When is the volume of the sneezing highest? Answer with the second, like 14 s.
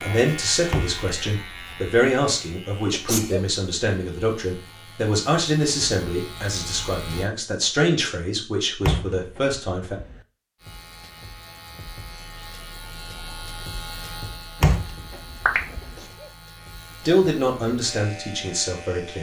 3 s.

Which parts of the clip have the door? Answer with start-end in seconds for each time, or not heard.
0.7-2.0, 8.8-10.2, 14.6-15.9.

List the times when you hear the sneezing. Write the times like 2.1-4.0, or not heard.
2.9-3.5, 15.8-16.4.